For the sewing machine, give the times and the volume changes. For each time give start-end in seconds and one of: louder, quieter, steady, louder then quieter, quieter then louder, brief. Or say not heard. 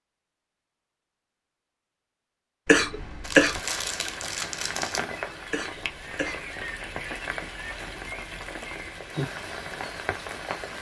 not heard.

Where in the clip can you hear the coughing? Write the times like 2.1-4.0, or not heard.
2.6-3.6, 5.5-6.5.